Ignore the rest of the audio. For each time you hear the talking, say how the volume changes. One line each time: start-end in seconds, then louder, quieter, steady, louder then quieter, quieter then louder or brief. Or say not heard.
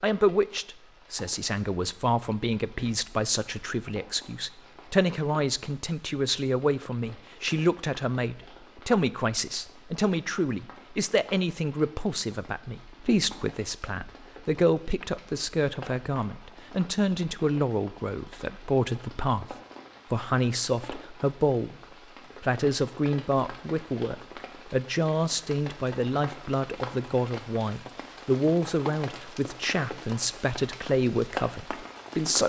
0.0-21.8 steady
22.4-32.4 steady.